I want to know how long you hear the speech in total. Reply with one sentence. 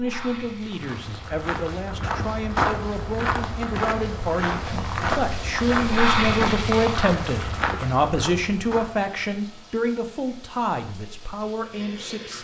You can hear the speech for 12 seconds altogether.